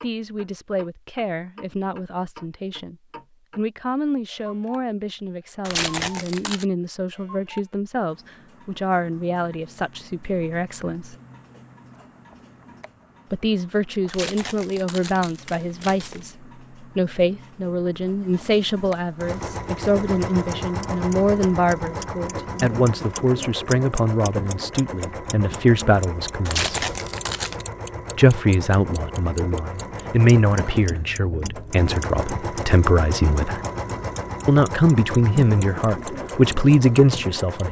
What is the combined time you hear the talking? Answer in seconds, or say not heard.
33 s.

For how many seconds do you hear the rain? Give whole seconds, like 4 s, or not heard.
not heard.